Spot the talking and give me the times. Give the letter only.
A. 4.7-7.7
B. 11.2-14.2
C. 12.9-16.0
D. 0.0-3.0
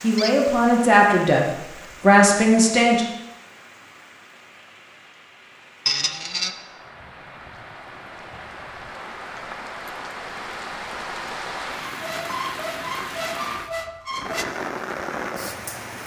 D.